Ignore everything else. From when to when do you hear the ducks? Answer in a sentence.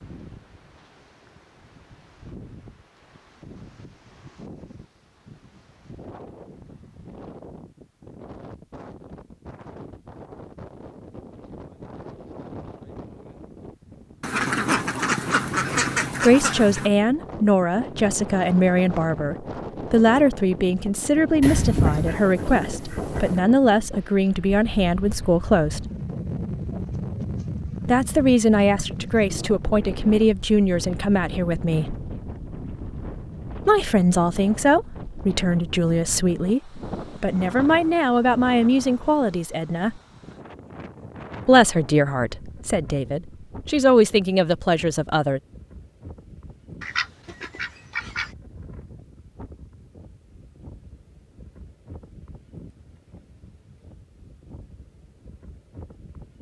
The ducks can be heard from 14.2 to 16.9 s, from 21.4 to 23.4 s and from 46.8 to 48.3 s.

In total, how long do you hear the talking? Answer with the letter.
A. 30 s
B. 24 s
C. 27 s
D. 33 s
B.